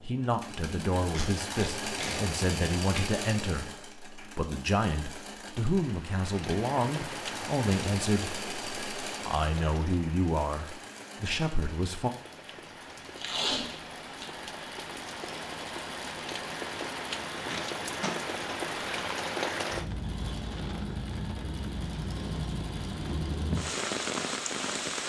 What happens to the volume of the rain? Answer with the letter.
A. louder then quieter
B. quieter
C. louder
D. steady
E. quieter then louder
E.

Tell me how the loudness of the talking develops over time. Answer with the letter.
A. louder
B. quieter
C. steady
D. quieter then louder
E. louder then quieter
C.